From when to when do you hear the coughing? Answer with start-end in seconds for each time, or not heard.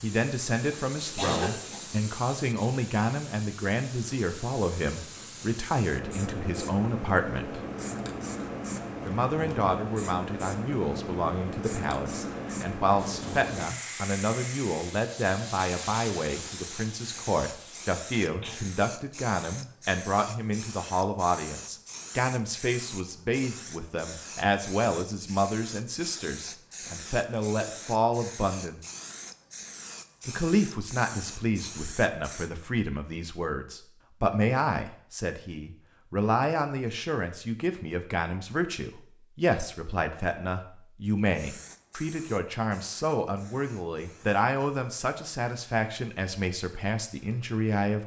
0.7-1.8.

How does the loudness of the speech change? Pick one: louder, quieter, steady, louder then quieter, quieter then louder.
steady.